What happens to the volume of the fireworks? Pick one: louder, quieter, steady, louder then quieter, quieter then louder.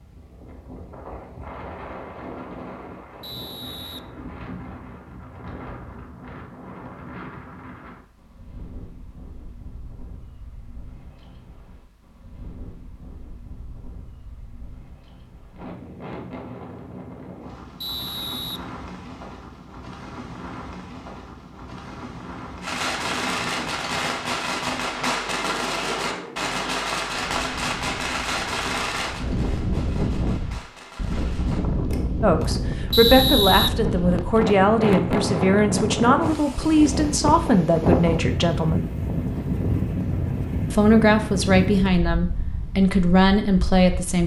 quieter.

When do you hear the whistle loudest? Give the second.
33 s.